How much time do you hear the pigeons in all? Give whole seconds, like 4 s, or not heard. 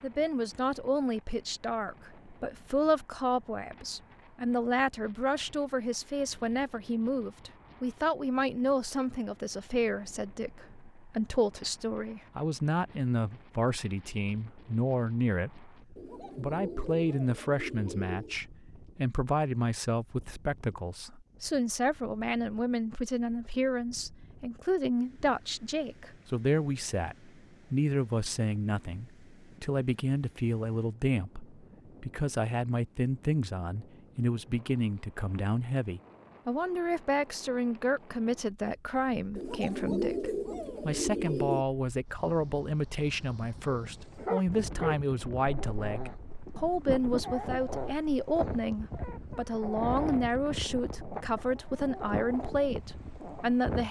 5 s.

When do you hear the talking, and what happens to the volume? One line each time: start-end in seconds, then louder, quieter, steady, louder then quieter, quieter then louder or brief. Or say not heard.
0.0-15.7 steady
16.4-53.8 steady.